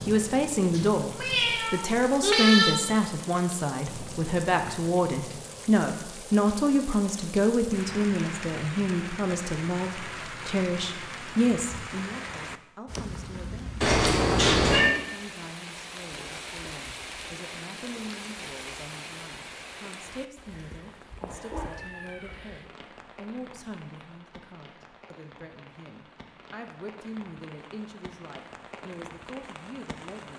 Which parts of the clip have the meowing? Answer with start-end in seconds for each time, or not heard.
0.7-2.8, 13.8-14.9, 21.2-22.4.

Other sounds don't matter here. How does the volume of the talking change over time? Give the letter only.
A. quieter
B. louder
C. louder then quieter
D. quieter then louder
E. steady
A.